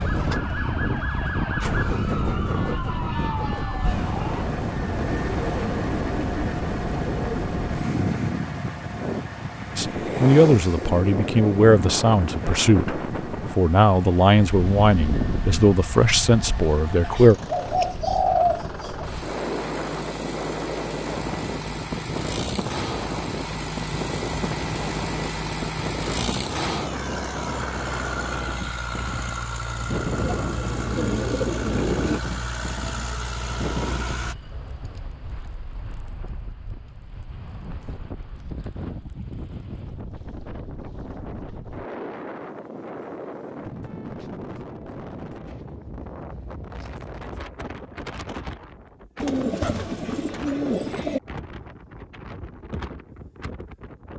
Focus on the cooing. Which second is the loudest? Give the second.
18 s.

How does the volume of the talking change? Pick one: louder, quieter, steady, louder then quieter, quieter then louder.
steady.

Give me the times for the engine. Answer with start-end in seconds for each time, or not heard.
0.0-34.4.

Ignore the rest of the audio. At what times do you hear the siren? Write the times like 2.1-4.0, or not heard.
0.0-4.5.